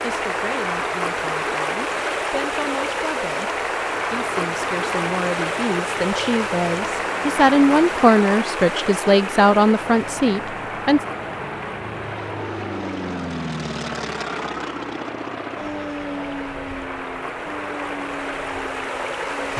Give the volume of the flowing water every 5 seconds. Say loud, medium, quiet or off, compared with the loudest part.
loud, loud, medium, medium.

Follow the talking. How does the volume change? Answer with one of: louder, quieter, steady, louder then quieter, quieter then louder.
louder.